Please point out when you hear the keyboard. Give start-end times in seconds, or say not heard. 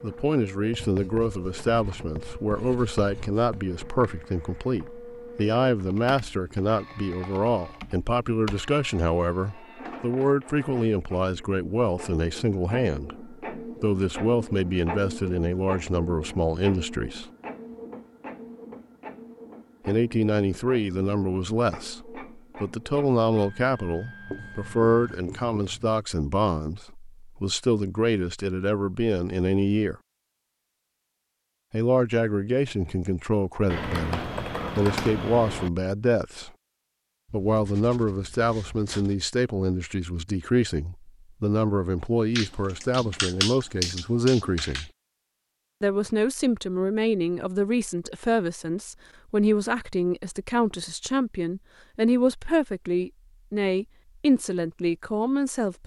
5.8-8.7, 33.6-35.7, 42.4-44.9.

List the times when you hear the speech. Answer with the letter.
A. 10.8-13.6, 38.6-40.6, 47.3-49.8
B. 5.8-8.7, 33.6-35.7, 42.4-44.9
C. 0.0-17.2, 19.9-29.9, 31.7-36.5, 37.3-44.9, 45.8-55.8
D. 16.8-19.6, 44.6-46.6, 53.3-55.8
C.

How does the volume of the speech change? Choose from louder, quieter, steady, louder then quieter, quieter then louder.
steady.